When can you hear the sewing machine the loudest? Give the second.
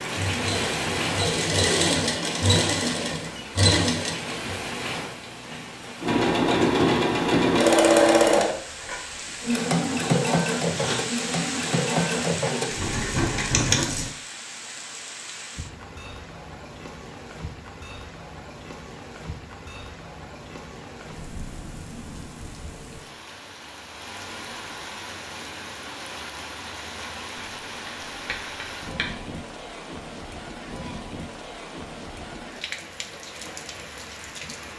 8 s.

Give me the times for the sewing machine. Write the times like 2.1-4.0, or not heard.
0.0-4.4, 6.0-14.1.